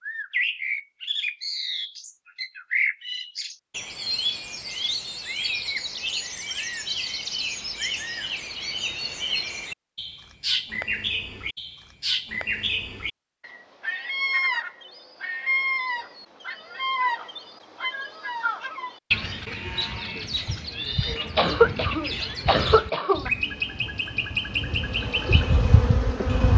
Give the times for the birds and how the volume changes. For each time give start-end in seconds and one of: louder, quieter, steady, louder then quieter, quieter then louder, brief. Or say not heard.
0.0-26.5 steady.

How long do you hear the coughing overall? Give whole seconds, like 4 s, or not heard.
2 s.